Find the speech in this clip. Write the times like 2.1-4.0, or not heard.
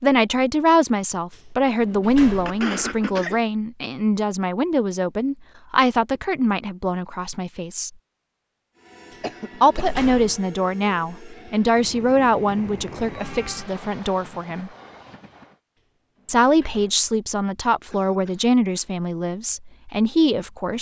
0.0-7.9, 9.6-14.7, 16.2-20.7.